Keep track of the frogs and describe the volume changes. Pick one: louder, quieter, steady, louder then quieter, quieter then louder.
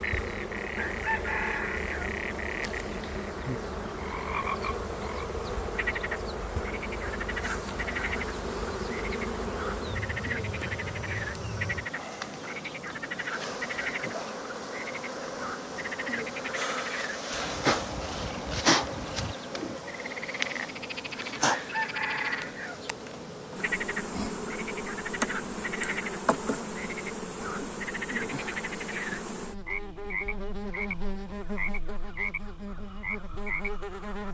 steady.